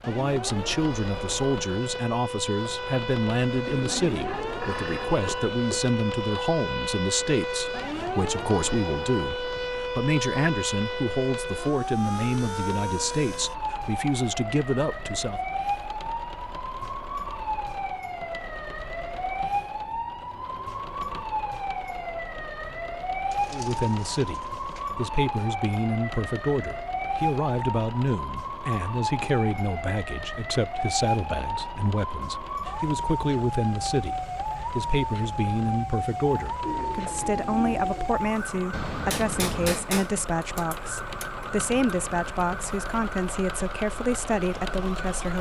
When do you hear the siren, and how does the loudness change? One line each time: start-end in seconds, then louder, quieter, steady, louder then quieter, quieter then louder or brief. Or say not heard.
0.0-45.3 steady.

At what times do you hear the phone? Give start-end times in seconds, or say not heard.
4.2-5.8, 38.7-39.8.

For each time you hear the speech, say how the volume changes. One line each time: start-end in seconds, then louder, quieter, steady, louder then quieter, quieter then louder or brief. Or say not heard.
0.1-15.4 steady
23.5-45.3 steady.